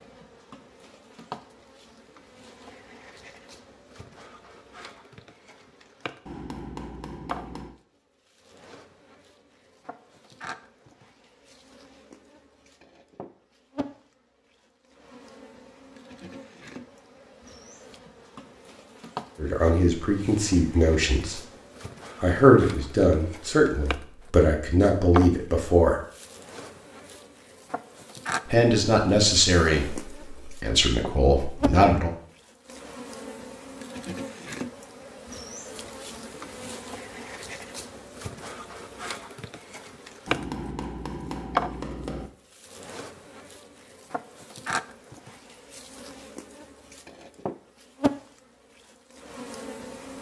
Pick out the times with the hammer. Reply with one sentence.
The hammer can be heard from 6.2 to 7.8 s and from 40.2 to 42.3 s.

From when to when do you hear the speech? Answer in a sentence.
The speech can be heard from 19.4 to 21.4 s, from 22.2 to 26.0 s and from 28.5 to 32.1 s.